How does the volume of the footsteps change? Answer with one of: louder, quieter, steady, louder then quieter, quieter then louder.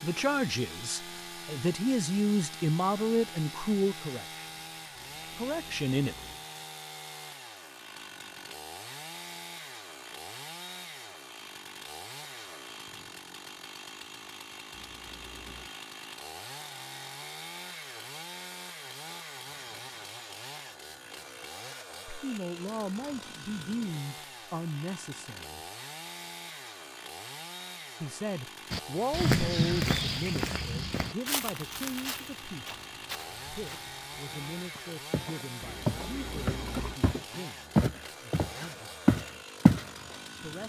quieter then louder.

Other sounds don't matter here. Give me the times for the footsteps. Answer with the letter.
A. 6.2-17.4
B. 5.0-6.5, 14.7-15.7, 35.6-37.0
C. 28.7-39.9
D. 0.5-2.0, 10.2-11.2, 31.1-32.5
C.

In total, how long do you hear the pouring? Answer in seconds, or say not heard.
4 s.